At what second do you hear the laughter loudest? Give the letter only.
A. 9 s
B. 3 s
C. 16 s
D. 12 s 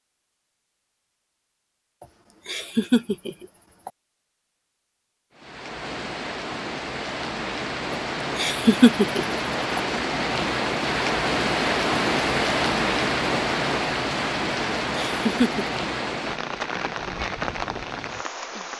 A.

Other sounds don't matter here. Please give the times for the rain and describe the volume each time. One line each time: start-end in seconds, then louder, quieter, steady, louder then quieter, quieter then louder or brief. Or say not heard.
5.3-18.7 louder then quieter.